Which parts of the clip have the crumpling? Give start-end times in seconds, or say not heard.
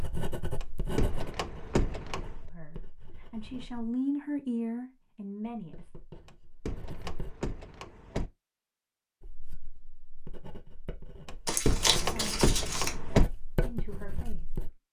11.4-12.9.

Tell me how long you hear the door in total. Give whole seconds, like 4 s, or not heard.
6 s.